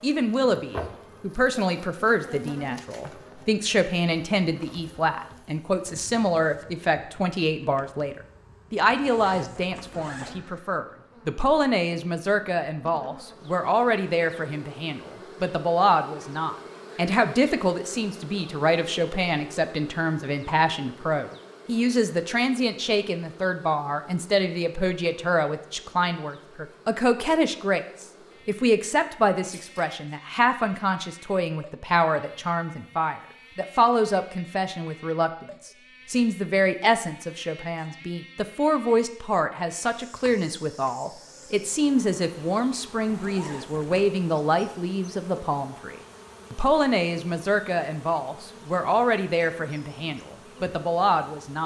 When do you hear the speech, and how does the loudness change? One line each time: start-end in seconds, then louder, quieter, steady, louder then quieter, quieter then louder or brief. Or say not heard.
0.0-51.6 steady.